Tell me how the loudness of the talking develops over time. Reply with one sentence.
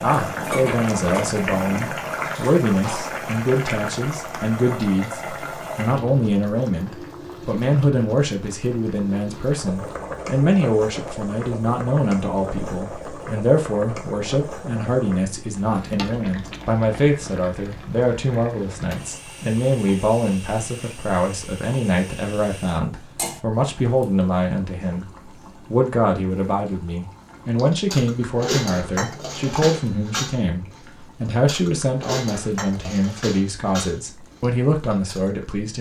The loudness of the talking stays about the same.